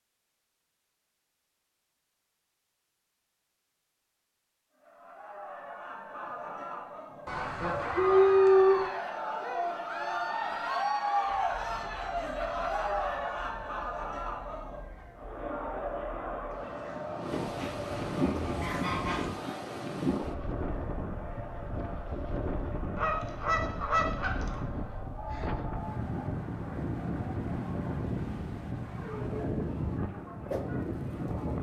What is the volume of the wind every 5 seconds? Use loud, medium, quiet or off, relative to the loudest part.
off, off, quiet, loud, loud, loud, loud.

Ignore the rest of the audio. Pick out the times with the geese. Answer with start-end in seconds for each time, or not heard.
7.2-8.9, 17.3-19.3, 22.9-24.6.